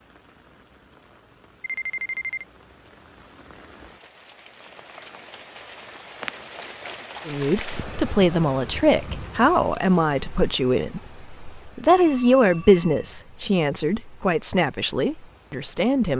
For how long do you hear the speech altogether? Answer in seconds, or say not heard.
9 s.